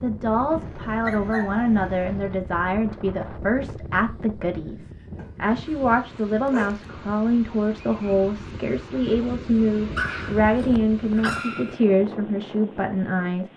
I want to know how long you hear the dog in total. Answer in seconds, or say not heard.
5 s.